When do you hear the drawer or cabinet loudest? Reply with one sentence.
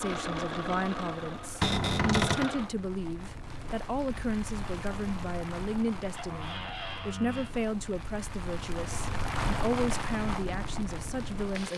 The loudest moment of the drawer or cabinet is at 2 seconds.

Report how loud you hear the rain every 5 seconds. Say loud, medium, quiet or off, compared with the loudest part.
medium, loud, loud.